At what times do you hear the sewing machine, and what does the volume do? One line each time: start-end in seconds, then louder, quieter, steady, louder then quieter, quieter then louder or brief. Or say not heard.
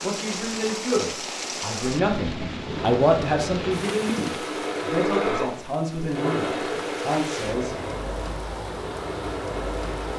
2.5-10.1 louder then quieter.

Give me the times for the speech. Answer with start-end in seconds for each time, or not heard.
0.0-7.8.